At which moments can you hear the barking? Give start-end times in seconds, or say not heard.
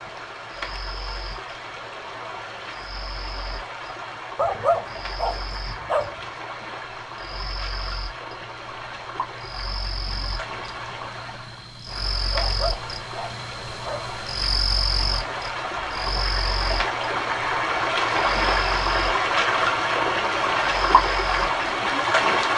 4.3-6.2, 12.3-14.1.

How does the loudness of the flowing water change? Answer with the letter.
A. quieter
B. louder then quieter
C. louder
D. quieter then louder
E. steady
C.